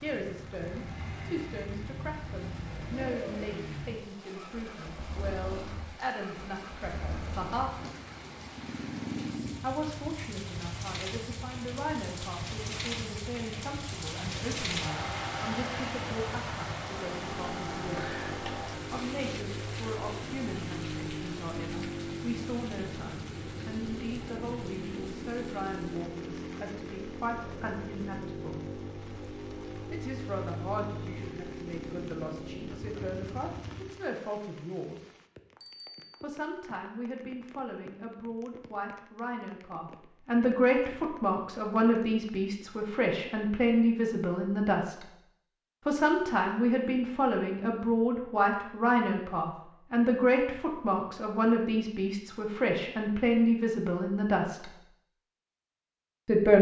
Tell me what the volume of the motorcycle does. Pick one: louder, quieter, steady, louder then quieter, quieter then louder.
steady.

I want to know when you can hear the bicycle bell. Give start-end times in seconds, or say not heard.
35.6-36.2.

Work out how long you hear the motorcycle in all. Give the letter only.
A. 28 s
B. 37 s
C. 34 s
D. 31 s
C.